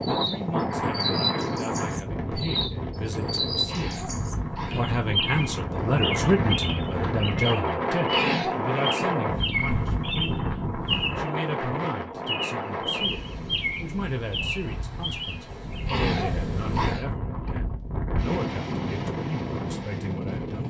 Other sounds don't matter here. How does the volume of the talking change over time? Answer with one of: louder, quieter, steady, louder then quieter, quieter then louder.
louder then quieter.